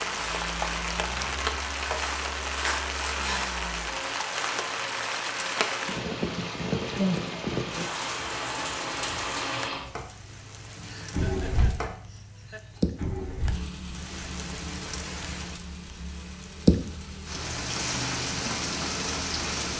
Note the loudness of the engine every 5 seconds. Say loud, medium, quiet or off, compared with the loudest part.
medium, loud, loud, medium.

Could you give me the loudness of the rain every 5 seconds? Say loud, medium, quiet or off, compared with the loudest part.
loud, loud, medium, loud.